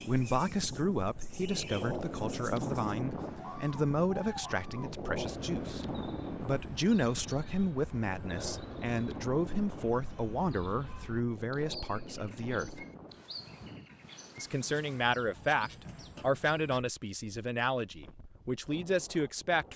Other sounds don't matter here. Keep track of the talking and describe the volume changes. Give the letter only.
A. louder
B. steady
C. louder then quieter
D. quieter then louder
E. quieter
B.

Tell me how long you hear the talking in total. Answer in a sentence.
You can hear the talking for 18 seconds altogether.